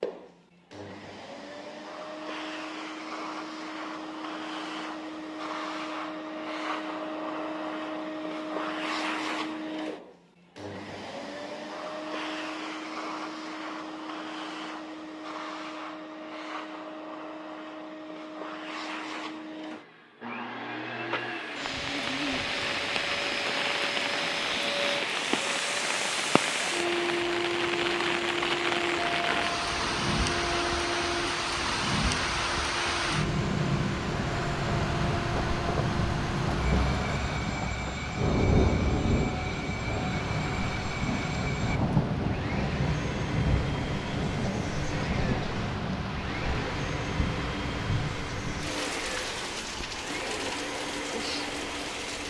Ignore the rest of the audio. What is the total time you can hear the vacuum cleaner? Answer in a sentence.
You can hear the vacuum cleaner for 52 seconds altogether.